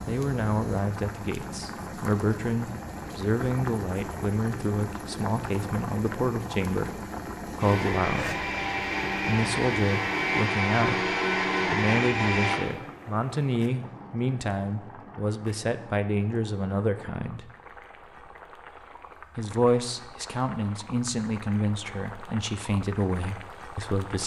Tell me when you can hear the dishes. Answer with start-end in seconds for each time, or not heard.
not heard.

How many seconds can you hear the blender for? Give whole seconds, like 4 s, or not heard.
5 s.